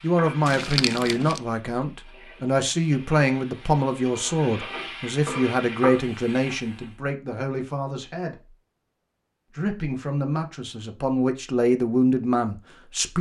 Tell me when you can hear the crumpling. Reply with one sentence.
You can hear the crumpling from 0.5 to 1.4 s.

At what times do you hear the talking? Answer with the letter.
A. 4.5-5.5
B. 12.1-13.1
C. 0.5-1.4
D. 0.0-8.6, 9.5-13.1
D.